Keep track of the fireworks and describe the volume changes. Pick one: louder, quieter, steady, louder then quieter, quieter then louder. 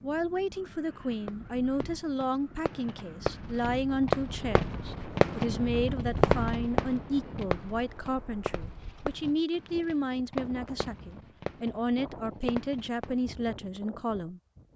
louder then quieter.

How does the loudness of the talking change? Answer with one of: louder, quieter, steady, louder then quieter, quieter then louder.
steady.